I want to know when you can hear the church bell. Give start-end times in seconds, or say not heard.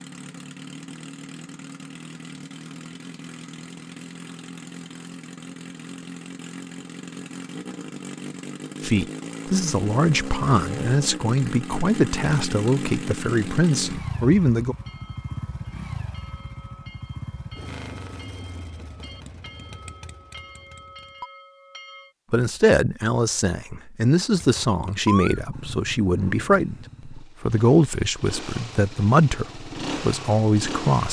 14.7-22.1.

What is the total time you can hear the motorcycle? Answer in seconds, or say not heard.
28 s.